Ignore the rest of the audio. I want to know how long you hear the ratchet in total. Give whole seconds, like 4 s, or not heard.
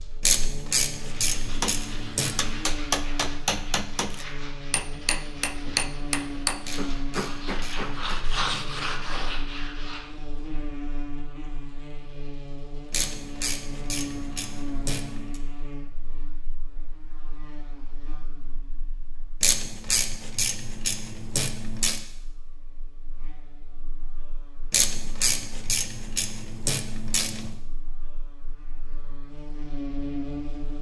12 s.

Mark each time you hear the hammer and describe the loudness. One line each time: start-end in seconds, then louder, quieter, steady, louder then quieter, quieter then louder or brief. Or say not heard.
1.4-9.4 quieter.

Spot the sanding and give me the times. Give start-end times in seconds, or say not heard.
0.9-10.0.